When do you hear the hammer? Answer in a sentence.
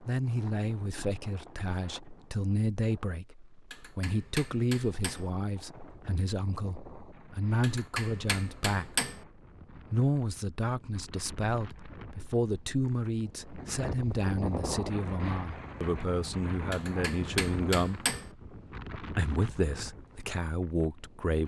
The hammer can be heard from 3.7 to 5.3 s, from 7.6 to 9.2 s and from 16.7 to 18.3 s.